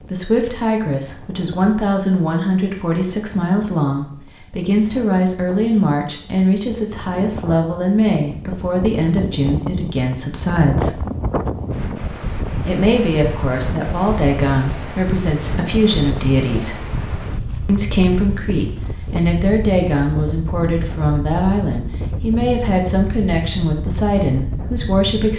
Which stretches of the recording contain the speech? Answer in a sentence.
The speech can be heard from 0.0 to 11.1 s, from 12.7 to 16.9 s and from 17.6 to 25.3 s.